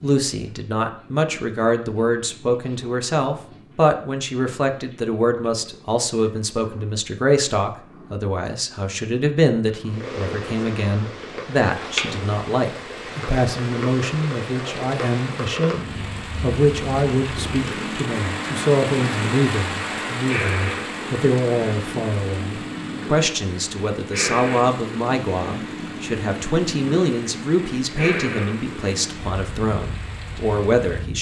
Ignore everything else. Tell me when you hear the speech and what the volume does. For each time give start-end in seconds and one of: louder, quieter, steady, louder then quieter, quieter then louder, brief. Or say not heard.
0.0-31.1 steady.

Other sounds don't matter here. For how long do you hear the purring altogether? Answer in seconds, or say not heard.
31 s.